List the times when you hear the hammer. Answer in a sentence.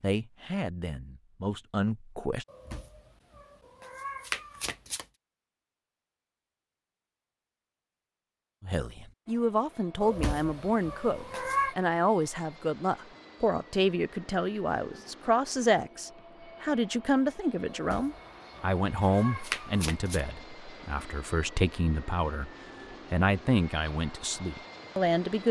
You can't hear the hammer here.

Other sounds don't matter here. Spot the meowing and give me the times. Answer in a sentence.
You can hear the meowing from 2.5 to 5.0 s, from 10.0 to 11.8 s and from 17.7 to 20.2 s.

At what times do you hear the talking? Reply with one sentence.
You can hear the talking from 0.0 to 2.5 s, from 8.6 to 22.5 s and from 23.1 to 25.4 s.